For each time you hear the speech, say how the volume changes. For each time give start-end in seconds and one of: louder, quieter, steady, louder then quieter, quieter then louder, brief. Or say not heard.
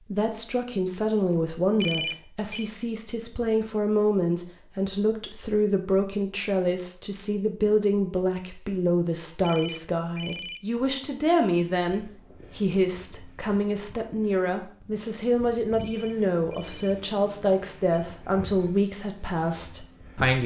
0.1-20.4 steady.